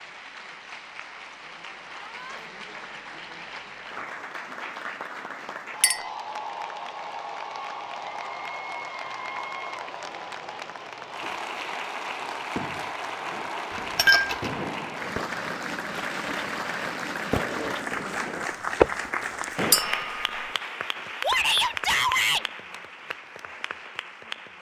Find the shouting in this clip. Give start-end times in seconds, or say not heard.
1.9-2.4, 21.2-22.4.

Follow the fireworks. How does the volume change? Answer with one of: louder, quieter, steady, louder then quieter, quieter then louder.
louder.